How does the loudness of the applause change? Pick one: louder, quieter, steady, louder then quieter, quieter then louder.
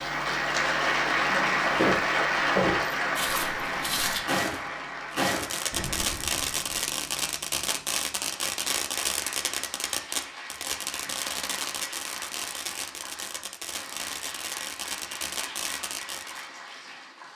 quieter.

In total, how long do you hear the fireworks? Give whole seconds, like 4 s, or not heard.
11 s.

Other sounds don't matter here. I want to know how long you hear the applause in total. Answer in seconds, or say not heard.
17 s.